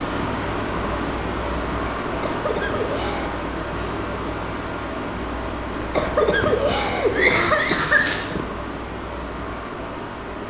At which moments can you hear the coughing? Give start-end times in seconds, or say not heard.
2.0-3.3, 5.8-8.4.